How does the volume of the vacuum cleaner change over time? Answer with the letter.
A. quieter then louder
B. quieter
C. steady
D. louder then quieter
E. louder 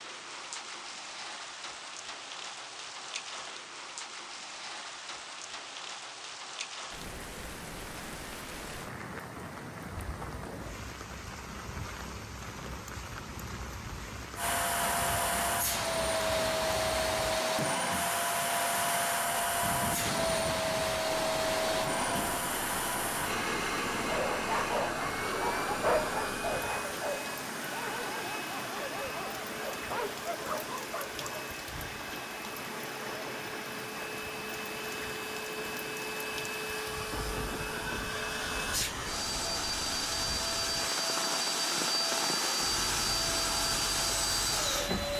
A.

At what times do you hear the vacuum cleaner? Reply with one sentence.
The vacuum cleaner can be heard from 14.3 to 45.1 s.